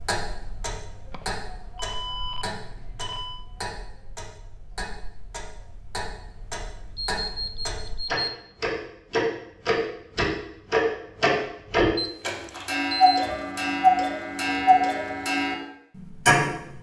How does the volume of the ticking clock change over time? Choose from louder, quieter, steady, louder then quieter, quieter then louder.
louder.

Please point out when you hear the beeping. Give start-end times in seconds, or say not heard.
1.1-3.5, 7.0-8.3, 11.9-13.2.